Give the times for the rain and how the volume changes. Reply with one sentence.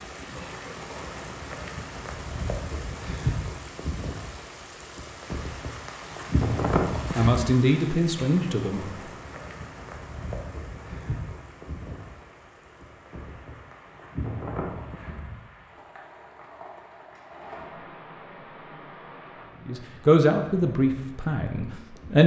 You can hear the rain from 0.0 to 22.2 s, getting quieter.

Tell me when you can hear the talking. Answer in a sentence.
The talking can be heard from 7.2 to 8.8 s and from 19.6 to 22.2 s.